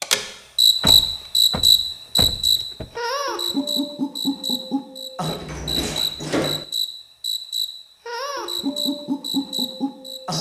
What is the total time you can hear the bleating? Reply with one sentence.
You can't hear the bleating here.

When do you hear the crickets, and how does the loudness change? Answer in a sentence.
You can hear the crickets from 0.0 to 10.3 s, getting quieter.